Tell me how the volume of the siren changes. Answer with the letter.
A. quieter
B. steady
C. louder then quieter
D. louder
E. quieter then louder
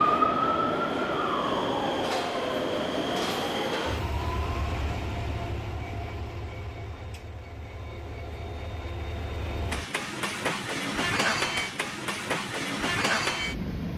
A.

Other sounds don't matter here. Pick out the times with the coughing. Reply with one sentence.
The coughing can't be heard in this clip.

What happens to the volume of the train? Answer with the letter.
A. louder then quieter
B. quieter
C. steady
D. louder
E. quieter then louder
E.